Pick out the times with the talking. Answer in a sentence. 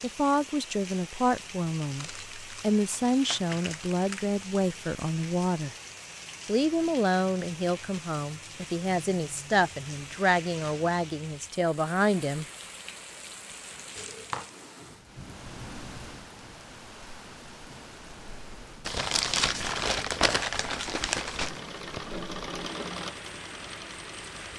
The talking can be heard from 0.0 to 5.8 s and from 6.5 to 12.4 s.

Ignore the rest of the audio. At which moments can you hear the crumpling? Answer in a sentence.
The crumpling can be heard from 1.9 to 4.3 s, from 13.9 to 14.5 s and from 18.9 to 21.6 s.